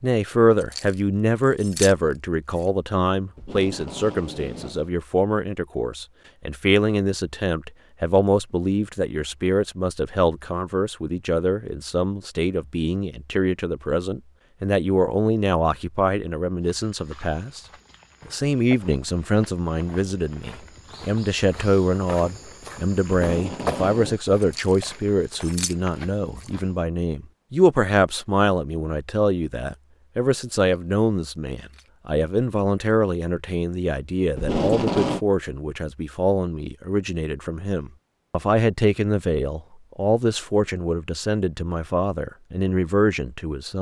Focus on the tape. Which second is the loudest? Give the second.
35 s.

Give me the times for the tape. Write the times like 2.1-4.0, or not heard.
3.4-4.9, 23.1-24.2, 34.4-35.2.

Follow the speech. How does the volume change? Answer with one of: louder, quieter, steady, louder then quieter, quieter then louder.
steady.